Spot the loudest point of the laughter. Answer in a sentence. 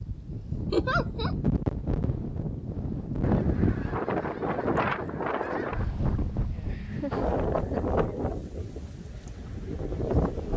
The loudest moment of the laughter is at 1 second.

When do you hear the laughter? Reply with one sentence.
The laughter can be heard from 0.7 to 1.4 s and from 6.8 to 8.2 s.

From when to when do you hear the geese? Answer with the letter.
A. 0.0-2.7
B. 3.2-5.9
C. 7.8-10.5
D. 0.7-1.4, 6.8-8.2
B.